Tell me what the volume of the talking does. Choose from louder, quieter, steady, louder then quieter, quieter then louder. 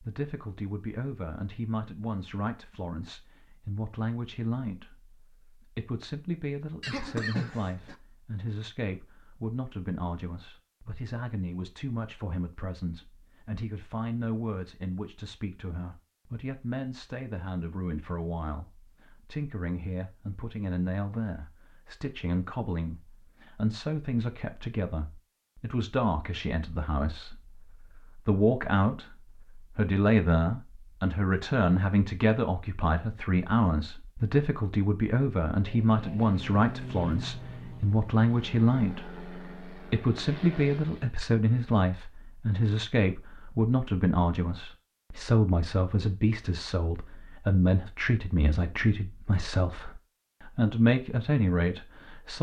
louder.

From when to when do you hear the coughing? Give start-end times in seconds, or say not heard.
6.8-8.0.